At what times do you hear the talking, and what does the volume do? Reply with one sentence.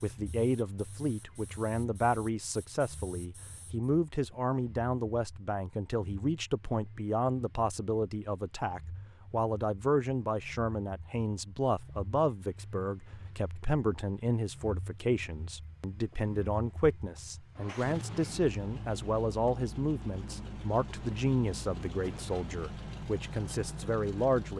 The talking can be heard from 0.0 to 24.5 s, at a steady volume.